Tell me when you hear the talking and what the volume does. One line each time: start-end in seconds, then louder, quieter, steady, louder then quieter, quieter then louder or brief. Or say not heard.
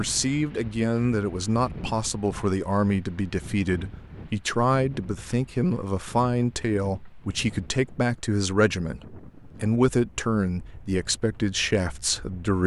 0.0-12.6 steady.